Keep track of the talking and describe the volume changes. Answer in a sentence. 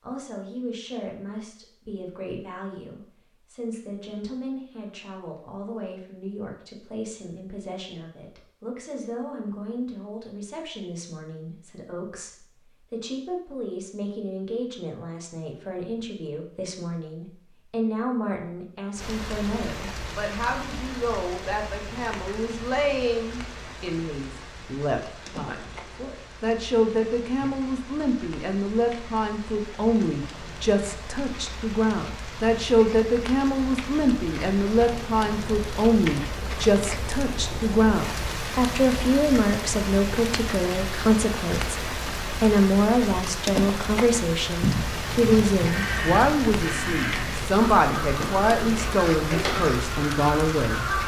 The volume of the talking goes up.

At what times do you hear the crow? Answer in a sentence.
You can hear the crow from 44.6 to 51.0 s.